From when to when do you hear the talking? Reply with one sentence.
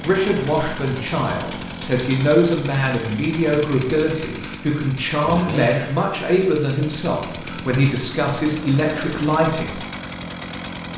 You can hear the talking from 0.0 to 9.8 s.